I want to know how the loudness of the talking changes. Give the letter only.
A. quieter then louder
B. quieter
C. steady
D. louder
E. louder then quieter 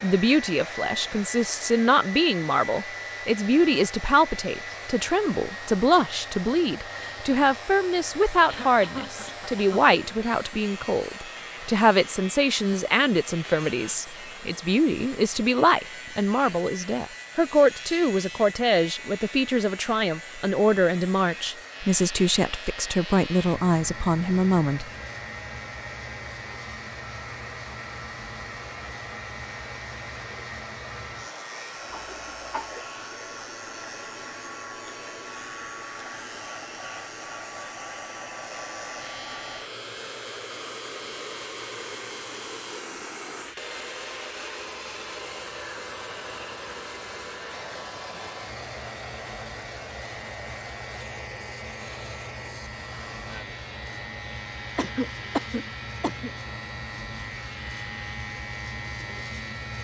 C.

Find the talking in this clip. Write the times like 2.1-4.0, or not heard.
0.0-24.9.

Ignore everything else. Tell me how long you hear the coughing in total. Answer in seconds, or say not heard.
4 s.